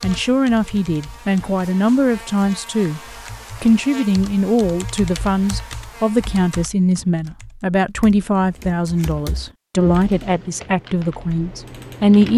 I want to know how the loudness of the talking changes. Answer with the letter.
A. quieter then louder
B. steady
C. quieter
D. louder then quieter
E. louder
B.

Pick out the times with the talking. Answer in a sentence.
You can hear the talking from 0.0 to 3.0 s and from 3.6 to 12.3 s.